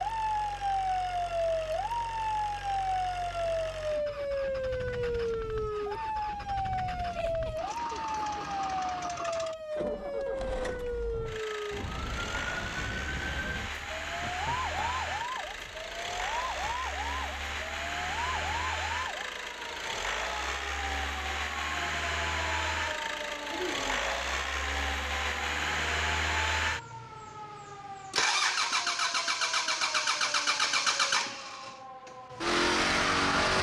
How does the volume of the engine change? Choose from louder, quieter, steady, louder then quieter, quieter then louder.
louder.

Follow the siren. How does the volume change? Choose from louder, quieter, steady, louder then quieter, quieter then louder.
quieter.